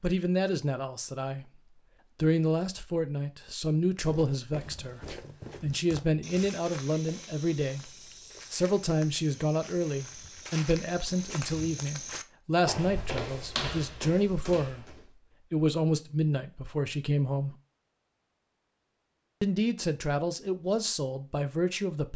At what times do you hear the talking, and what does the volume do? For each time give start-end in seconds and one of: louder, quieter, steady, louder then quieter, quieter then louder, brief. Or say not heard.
0.0-17.6 steady
19.4-22.1 brief.